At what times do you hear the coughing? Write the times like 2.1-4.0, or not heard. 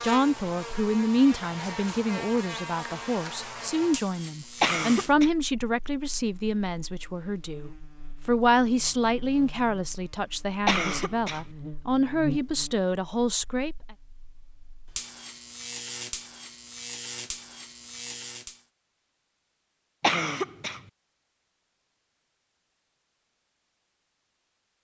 4.6-5.3, 10.7-11.4, 20.0-20.8.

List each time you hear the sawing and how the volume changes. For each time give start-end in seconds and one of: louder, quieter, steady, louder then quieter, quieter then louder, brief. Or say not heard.
not heard.